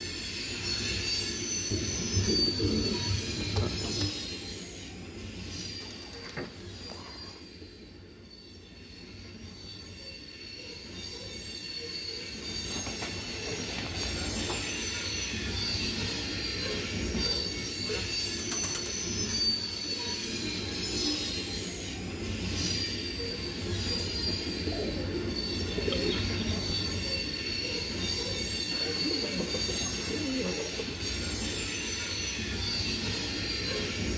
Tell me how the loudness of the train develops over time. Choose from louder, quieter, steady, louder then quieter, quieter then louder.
quieter then louder.